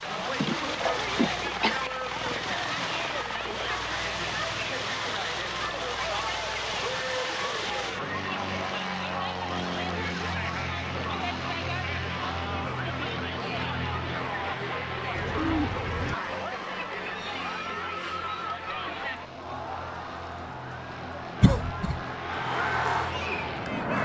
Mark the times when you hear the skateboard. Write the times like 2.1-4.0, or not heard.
not heard.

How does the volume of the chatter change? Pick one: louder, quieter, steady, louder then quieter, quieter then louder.
steady.